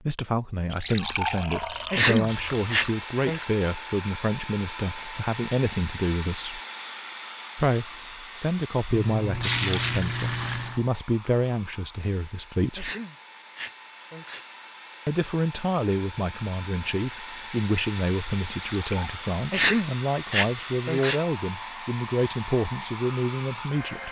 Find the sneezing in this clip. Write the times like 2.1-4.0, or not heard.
1.9-3.5, 12.8-14.4, 19.5-21.2.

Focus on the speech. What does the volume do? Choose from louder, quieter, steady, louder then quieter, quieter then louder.
steady.